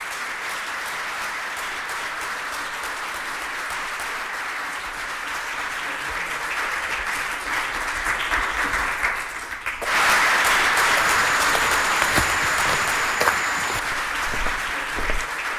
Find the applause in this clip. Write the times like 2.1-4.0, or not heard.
0.0-15.5.